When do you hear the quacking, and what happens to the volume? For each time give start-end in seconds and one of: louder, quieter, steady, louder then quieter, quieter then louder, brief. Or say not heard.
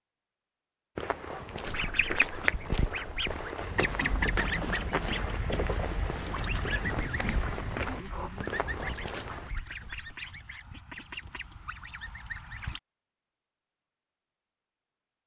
1.6-12.8 quieter.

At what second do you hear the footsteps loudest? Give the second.
2 s.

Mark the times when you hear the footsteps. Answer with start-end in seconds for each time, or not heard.
0.9-9.5.